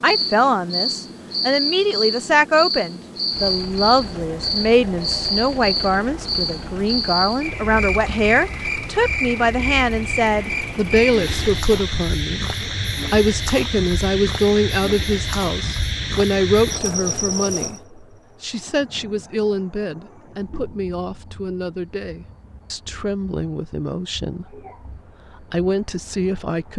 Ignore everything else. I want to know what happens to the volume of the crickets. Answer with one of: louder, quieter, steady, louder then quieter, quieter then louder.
quieter.